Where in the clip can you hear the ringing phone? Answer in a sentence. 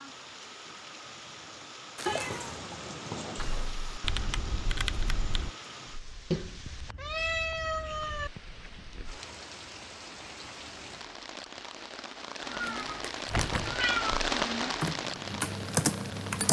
The ringing phone can't be heard in this clip.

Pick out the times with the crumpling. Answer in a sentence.
You can hear the crumpling from 1.9 to 2.5 s and from 12.6 to 13.7 s.